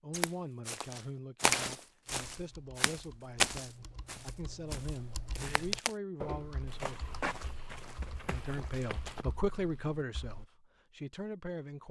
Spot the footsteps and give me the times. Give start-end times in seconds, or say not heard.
0.1-9.2.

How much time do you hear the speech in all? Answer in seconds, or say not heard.
11 s.